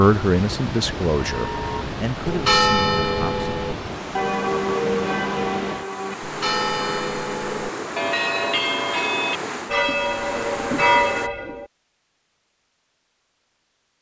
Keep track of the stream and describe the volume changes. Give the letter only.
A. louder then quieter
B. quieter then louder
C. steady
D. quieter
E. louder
C.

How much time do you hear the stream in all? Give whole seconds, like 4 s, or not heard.
11 s.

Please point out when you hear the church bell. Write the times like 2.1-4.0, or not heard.
1.2-11.7.